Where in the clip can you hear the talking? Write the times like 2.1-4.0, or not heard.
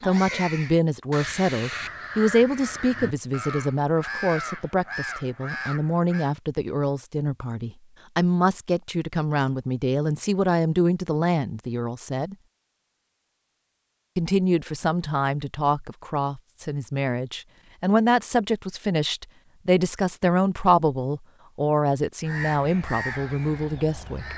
0.0-12.3, 14.2-24.3.